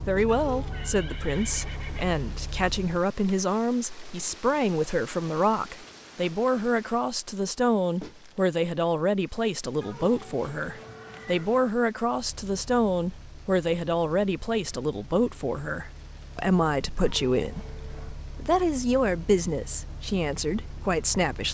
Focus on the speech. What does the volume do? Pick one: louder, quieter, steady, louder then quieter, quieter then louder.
steady.